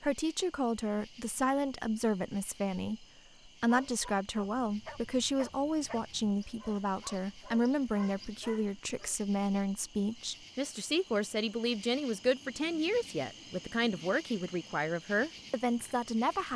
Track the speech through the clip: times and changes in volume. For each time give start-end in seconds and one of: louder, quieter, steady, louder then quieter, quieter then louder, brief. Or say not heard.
0.0-16.5 steady.